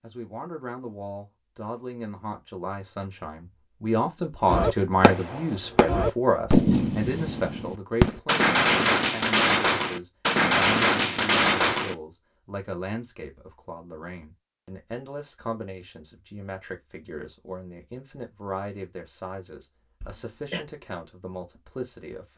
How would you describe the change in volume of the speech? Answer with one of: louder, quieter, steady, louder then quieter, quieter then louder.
louder then quieter.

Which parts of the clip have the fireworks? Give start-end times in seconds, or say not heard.
4.5-11.9.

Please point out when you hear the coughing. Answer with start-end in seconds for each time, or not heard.
20.0-20.6.